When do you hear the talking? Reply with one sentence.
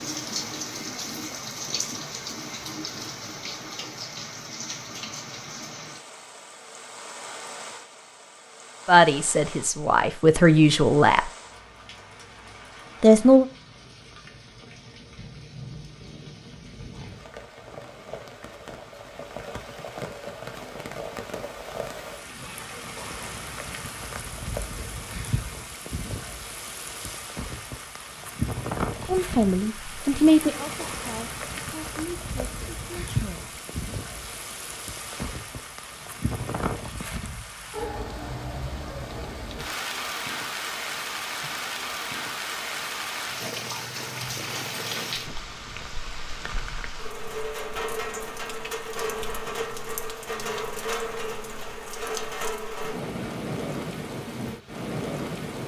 You can hear the talking from 8.8 to 11.3 s, from 13.0 to 13.4 s and from 29.1 to 33.5 s.